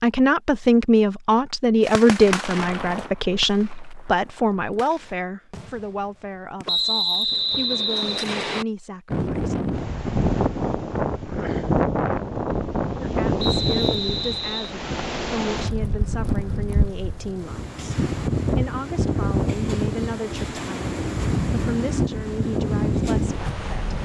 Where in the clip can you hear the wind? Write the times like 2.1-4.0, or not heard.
9.1-23.9.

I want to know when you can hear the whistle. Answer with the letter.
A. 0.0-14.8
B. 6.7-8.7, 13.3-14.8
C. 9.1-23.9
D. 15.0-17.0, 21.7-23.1
B.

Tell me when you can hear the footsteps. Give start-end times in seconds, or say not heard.
not heard.